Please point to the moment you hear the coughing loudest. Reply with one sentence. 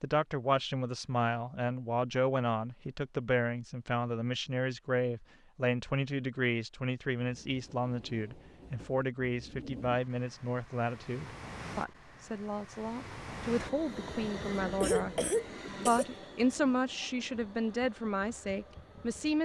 The volume of the coughing peaks at 15 seconds.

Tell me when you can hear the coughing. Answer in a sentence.
You can hear the coughing from 14.8 to 16.1 s.